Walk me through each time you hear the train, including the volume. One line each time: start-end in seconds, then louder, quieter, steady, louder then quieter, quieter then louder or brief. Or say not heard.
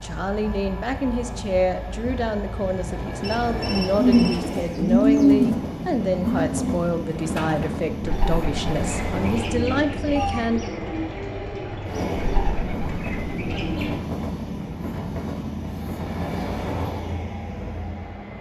0.0-18.3 steady.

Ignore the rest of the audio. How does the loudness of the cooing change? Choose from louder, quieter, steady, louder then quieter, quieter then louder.
quieter.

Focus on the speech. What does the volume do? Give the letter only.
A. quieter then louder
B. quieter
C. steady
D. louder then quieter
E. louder
C.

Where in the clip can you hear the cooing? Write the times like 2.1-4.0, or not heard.
4.0-14.0.